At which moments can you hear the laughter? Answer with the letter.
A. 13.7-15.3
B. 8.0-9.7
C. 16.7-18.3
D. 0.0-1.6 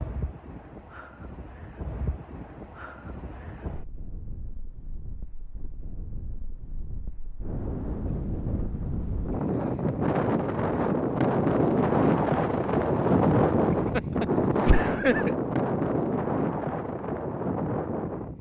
A.